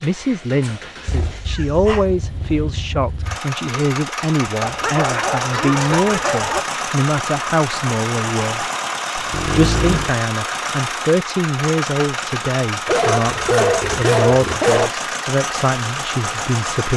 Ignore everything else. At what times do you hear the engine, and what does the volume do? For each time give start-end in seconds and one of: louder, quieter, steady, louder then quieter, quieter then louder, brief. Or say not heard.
0.0-16.9 louder.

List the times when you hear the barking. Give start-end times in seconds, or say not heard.
0.6-2.0, 4.6-6.7, 9.2-10.2, 12.8-14.9.